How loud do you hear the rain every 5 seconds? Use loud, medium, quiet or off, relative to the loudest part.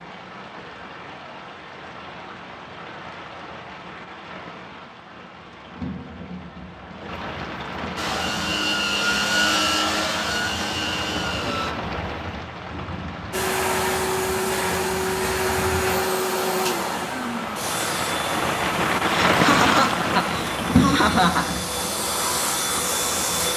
quiet, medium, medium, loud, loud.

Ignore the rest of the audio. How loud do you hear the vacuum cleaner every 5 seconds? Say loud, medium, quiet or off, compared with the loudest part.
off, loud, loud, loud, medium.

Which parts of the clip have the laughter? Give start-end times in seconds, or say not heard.
19.1-21.6.